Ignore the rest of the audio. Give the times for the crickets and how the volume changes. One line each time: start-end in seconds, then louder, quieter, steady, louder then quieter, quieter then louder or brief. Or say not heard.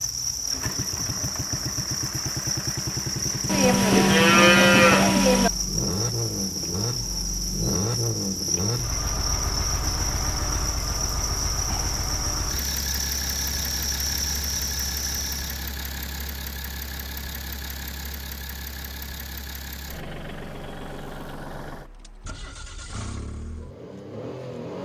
0.0-15.6 steady.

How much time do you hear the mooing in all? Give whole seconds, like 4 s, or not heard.
2 s.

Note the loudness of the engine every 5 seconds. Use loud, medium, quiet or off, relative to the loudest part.
loud, loud, loud, medium, medium.